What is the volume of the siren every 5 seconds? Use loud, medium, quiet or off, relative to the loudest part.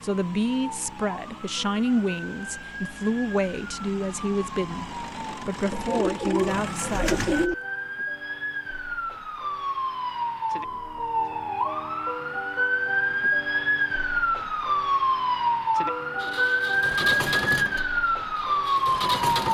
quiet, medium, loud, loud.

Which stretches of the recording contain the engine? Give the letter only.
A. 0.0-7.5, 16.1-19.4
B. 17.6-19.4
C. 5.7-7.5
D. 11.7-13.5
A.